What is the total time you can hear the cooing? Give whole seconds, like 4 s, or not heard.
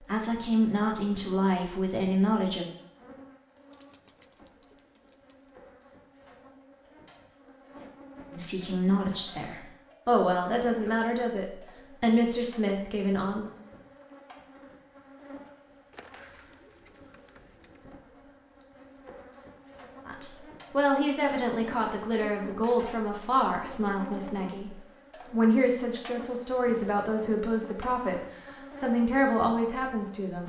4 s.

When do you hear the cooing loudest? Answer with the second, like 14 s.
16 s.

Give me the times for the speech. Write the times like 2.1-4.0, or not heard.
0.1-2.6, 8.3-13.5, 20.1-28.2, 28.8-30.4.